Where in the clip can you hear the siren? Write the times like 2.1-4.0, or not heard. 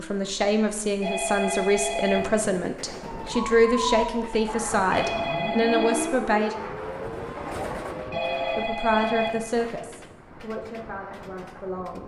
3.0-8.6.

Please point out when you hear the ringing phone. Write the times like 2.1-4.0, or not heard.
1.0-2.2, 4.9-6.1, 8.1-9.6.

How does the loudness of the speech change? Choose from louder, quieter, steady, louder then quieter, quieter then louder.
quieter.